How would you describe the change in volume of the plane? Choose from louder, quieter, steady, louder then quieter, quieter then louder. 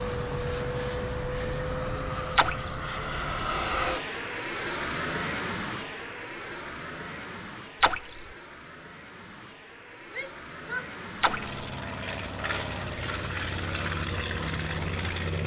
quieter then louder.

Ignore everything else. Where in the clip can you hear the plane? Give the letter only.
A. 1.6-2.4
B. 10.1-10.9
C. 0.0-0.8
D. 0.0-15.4
D.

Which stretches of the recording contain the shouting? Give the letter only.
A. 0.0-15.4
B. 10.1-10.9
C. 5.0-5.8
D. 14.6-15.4
B.